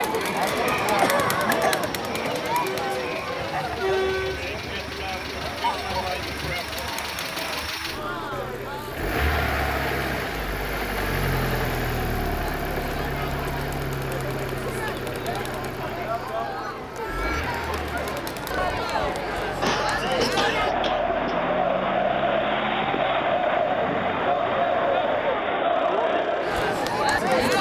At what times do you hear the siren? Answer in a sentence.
The siren can't be heard in this clip.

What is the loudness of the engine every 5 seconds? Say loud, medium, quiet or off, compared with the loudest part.
medium, loud, loud, medium, quiet, quiet.